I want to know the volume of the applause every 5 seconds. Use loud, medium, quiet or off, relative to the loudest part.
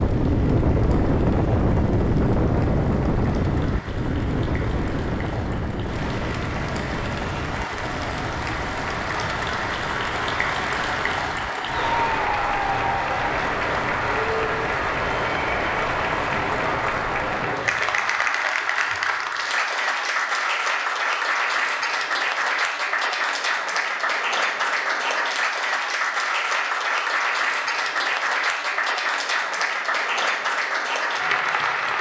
quiet, medium, loud, loud, loud, loud, loud.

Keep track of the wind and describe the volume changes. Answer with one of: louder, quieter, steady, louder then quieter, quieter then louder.
quieter.